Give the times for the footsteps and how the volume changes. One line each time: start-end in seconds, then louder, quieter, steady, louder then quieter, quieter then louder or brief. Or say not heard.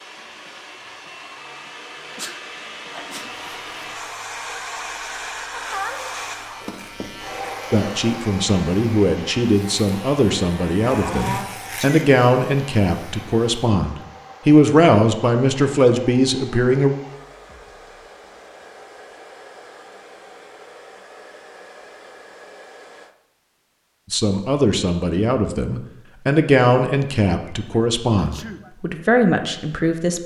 not heard.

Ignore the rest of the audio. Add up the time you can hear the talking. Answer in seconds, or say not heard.
15 s.